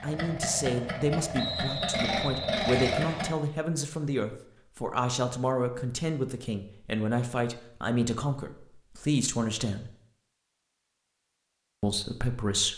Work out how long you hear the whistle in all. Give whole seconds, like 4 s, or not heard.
2 s.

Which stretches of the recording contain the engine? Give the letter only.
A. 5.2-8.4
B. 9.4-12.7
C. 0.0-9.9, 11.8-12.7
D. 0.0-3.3
D.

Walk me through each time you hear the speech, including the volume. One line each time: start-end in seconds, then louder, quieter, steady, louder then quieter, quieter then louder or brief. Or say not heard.
0.0-9.9 steady
11.8-12.7 brief.